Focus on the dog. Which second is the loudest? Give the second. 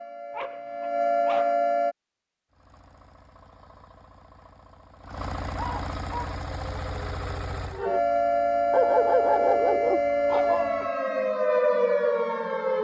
9 s.